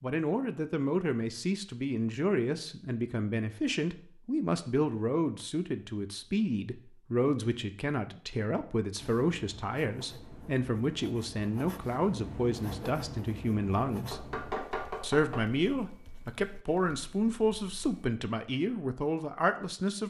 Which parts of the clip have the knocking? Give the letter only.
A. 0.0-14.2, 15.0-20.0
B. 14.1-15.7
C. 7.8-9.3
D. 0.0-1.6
B.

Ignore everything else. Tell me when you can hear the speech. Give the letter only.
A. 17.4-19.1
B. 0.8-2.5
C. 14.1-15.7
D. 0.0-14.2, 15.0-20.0
D.